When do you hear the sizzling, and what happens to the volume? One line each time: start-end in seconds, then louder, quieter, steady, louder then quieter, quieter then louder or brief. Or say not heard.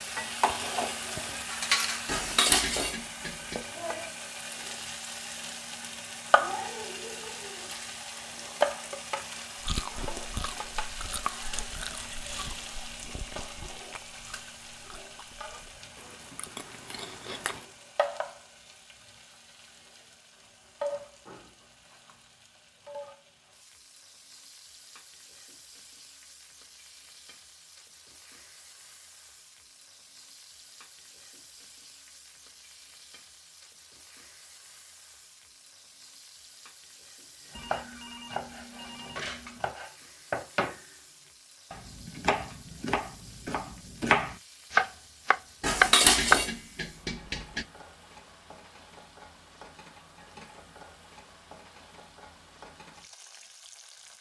0.0-54.1 quieter.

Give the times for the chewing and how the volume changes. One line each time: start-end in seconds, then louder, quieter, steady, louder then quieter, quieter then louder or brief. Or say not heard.
9.6-17.6 quieter then louder.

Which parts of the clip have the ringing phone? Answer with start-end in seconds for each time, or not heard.
37.5-39.6.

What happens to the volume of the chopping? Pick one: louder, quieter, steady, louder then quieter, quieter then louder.
louder.